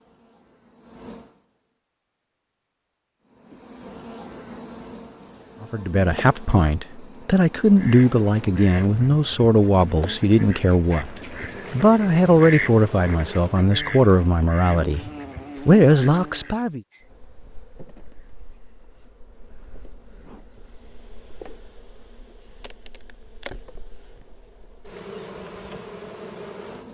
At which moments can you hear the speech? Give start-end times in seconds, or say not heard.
5.6-15.1, 15.7-16.8.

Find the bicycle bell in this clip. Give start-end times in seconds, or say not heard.
not heard.